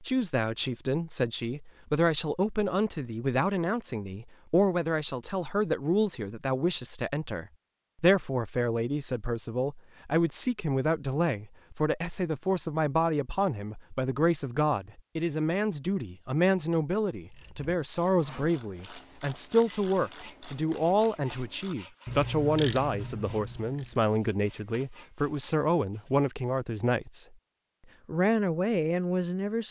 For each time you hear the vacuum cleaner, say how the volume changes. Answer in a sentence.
You can't hear the vacuum cleaner here.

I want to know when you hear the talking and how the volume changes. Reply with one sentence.
The talking can be heard from 0.0 to 27.2 s, at a steady volume; and briefly from 28.1 to 29.6 s.